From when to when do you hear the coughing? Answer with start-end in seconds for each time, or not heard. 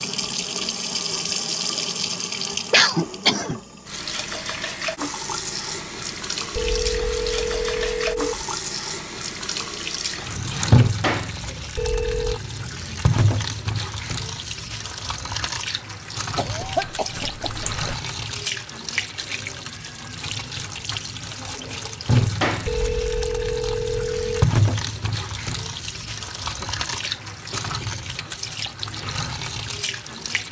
2.7-3.6, 16.4-17.9, 26.4-28.0.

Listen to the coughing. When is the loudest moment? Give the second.
3 s.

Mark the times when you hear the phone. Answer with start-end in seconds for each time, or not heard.
6.5-8.4, 11.8-12.4, 22.6-24.5.